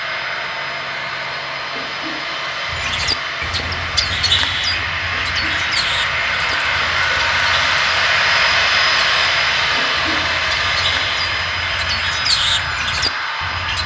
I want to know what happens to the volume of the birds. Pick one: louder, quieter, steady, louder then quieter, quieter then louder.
quieter then louder.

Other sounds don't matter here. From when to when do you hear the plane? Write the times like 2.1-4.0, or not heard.
0.0-13.8.